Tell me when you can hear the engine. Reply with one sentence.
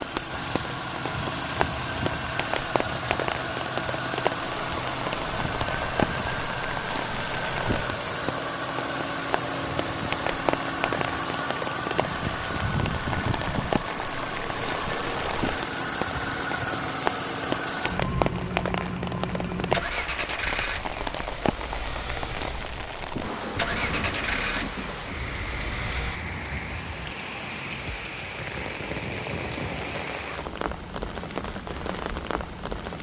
You can hear the engine from 0.0 to 26.2 s.